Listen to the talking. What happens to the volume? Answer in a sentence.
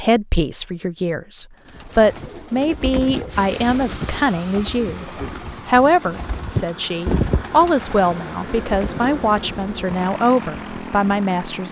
The loudness of the talking stays about the same.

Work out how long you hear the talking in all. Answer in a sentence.
The talking can be heard for 11 seconds in total.